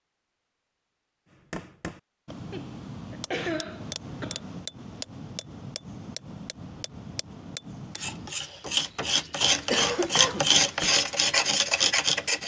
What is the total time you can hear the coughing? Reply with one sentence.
The coughing can be heard for 3 seconds in total.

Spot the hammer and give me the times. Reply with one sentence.
The hammer can be heard from 1.3 to 11.0 s.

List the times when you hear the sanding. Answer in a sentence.
You can hear the sanding from 8.0 to 12.4 s.